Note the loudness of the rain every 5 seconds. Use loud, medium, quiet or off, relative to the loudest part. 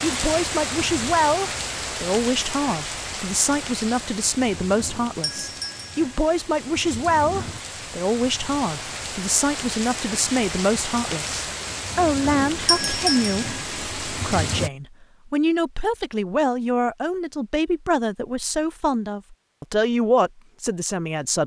loud, medium, loud, off, off.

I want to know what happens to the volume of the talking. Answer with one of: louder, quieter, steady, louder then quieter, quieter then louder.
steady.